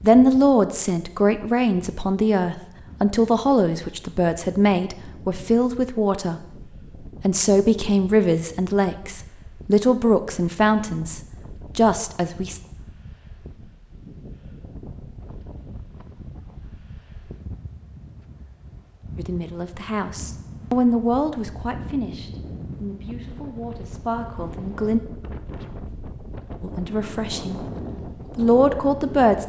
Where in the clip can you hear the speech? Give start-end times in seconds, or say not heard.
0.0-6.5, 7.2-12.6, 19.1-25.0, 26.6-27.6, 28.4-29.4.